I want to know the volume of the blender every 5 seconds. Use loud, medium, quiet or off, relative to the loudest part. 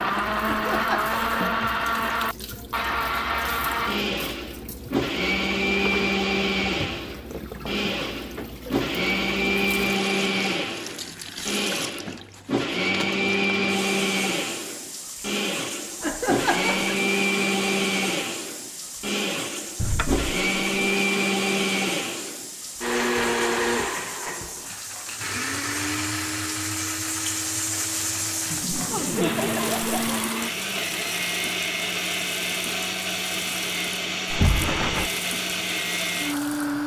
loud, loud, loud, loud, loud, medium, loud, loud.